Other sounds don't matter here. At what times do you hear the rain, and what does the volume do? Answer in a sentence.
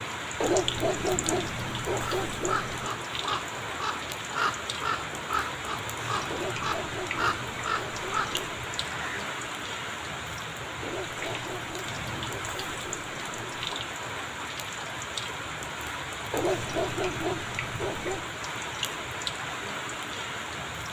The rain can be heard from 0.0 to 20.8 s, at a steady volume.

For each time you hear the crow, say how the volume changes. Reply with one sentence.
You can hear the crow from 1.9 to 9.2 s, at a steady volume.